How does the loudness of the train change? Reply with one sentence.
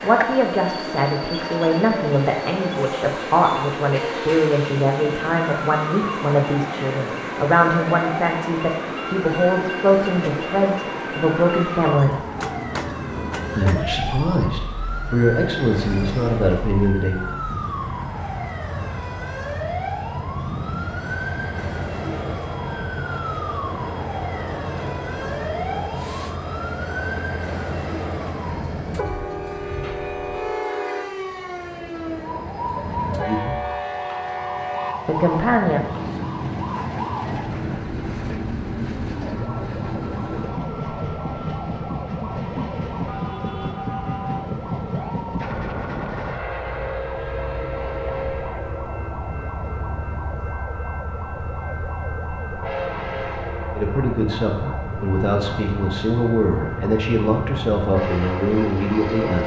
The loudness of the train stays about the same.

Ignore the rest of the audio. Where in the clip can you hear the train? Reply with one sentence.
You can hear the train from 0.0 to 59.4 s.